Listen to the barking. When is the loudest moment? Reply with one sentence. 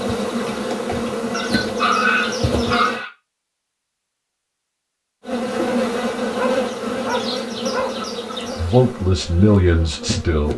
The volume of the barking peaks at 2 seconds.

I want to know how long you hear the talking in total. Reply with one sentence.
You can hear the talking for 2 seconds altogether.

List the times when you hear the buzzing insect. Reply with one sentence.
You can hear the buzzing insect from 0.0 to 3.0 s and from 5.2 to 10.5 s.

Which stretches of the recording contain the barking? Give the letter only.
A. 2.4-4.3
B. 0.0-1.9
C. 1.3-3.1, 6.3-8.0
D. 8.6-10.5
C.